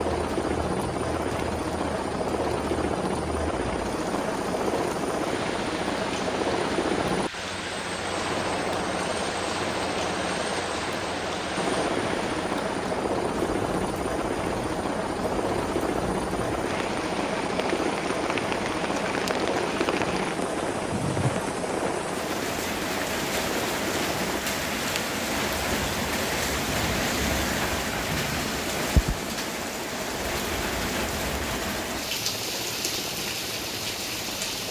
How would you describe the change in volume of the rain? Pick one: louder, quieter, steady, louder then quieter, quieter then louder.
louder.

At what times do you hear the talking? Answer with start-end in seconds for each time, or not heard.
not heard.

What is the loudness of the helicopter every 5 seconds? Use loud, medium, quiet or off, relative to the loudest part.
loud, loud, loud, loud, loud, medium, medium.